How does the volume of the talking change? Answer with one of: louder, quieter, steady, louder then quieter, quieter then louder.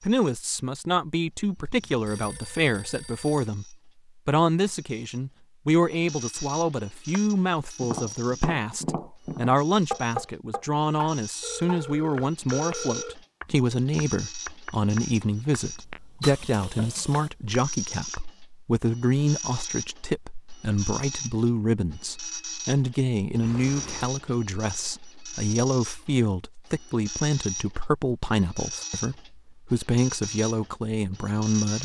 steady.